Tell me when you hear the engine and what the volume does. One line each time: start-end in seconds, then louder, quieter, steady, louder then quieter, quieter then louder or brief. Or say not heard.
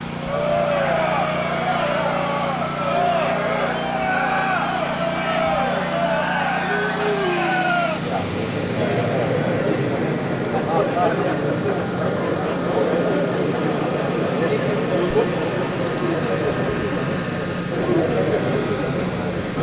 0.0-19.5 steady.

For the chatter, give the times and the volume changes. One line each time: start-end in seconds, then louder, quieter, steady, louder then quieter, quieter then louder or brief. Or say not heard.
0.1-19.5 steady.